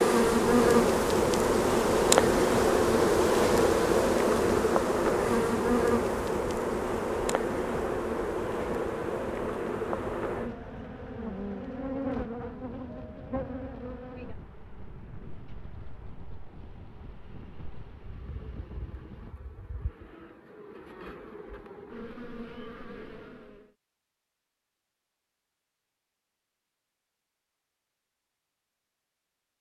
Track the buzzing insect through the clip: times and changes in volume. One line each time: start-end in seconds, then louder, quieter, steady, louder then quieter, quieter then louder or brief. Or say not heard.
0.0-23.7 quieter then louder.